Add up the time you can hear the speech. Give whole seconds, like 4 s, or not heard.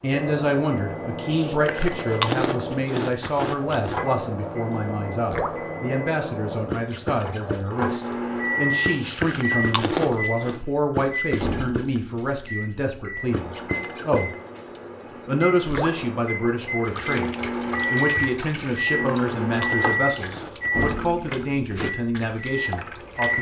22 s.